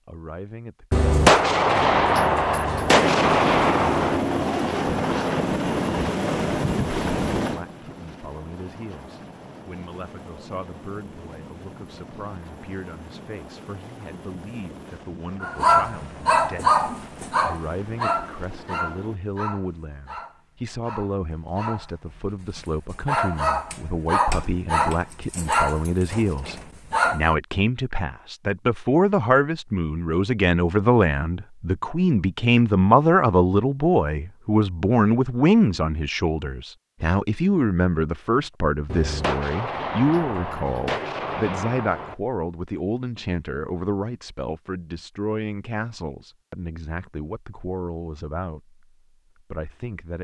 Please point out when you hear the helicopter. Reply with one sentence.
You can hear the helicopter from 2.9 to 19.2 s.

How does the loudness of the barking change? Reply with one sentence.
The volume of the barking goes down, then up.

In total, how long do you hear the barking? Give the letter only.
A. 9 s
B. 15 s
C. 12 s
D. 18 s
C.